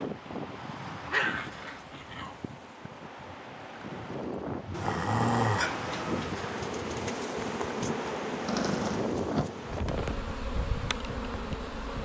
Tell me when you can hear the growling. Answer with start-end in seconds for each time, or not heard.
1.1-2.4, 4.7-6.3, 8.4-9.5.